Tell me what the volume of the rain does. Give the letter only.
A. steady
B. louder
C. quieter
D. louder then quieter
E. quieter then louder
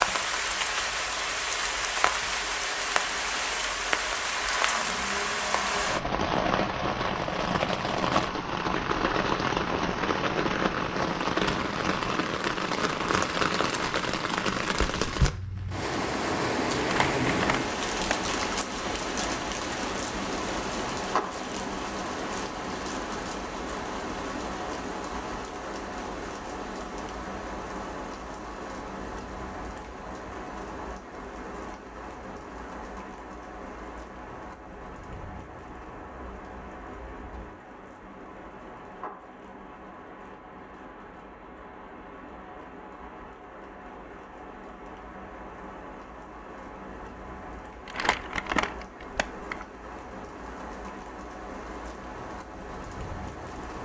C.